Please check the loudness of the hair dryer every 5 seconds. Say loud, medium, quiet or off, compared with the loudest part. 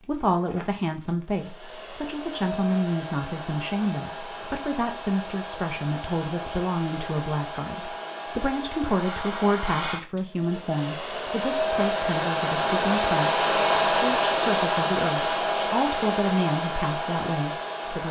quiet, medium, loud, loud.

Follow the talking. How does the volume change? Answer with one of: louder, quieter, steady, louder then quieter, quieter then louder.
steady.